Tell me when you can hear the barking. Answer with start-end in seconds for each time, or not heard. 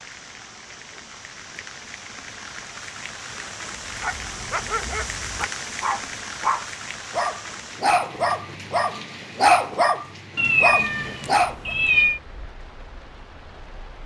3.9-11.6.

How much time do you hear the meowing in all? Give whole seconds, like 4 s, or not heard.
2 s.